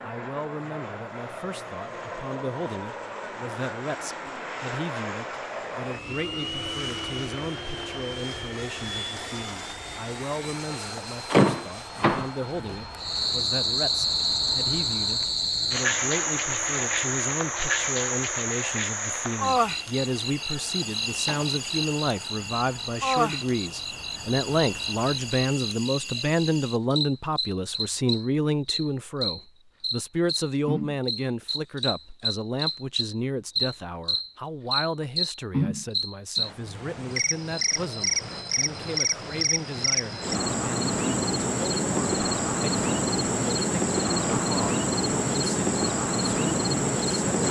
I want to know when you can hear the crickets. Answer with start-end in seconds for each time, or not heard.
13.0-47.4.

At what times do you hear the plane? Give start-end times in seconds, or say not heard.
0.0-25.4.